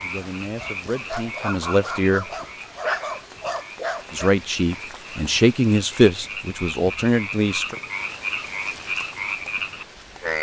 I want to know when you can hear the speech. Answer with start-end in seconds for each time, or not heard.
0.0-2.2, 4.1-7.8.